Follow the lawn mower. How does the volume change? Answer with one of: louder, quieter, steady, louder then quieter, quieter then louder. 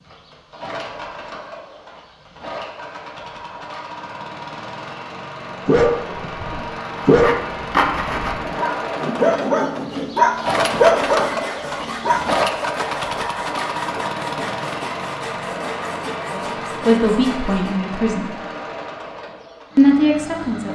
louder then quieter.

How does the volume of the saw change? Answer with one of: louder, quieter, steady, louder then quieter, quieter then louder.
quieter.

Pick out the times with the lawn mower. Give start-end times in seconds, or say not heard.
0.0-20.6.